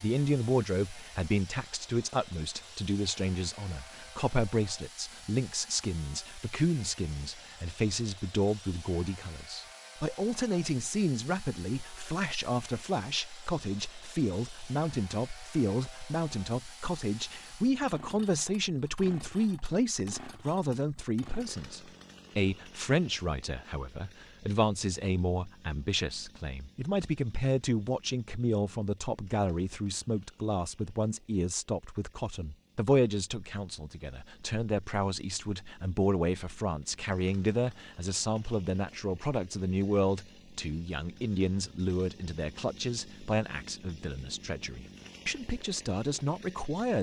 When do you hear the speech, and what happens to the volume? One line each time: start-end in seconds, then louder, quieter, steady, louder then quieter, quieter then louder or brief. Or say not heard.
0.0-46.9 steady.